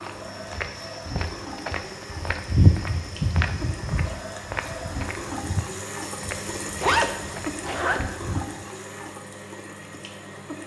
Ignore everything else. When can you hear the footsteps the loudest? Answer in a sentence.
The volume of the footsteps peaks at 3 seconds.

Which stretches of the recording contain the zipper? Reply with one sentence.
You can hear the zipper from 6.6 to 8.0 s.